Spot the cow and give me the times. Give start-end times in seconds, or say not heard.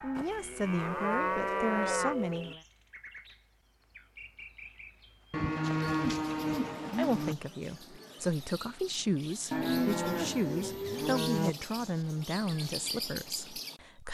0.1-2.5, 5.3-7.3, 9.5-11.5.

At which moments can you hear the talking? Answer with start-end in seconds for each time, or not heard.
0.0-2.6, 7.0-14.1.